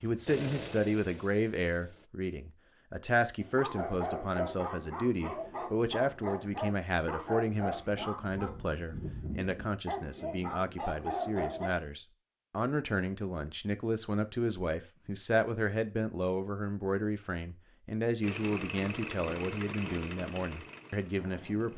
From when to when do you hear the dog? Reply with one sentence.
The dog can be heard from 3.4 to 11.8 s.